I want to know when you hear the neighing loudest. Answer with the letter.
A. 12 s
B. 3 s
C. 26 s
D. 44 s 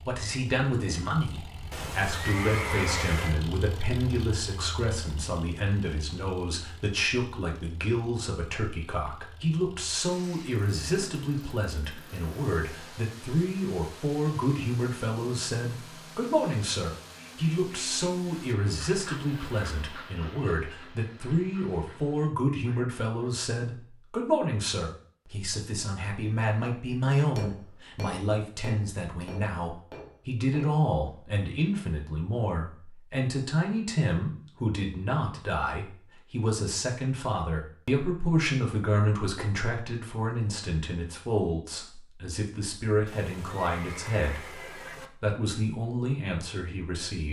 B.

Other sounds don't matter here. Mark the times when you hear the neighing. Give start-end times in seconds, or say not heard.
1.7-3.4, 43.0-45.1.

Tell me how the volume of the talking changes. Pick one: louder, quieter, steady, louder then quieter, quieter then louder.
steady.